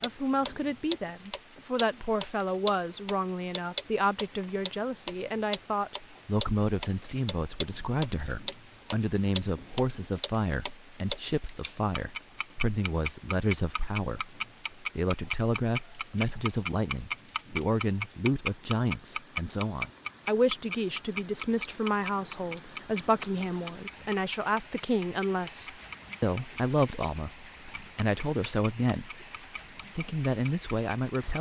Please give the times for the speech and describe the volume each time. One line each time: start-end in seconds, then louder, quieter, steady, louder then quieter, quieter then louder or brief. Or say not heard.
0.0-29.2 steady
29.9-31.3 brief.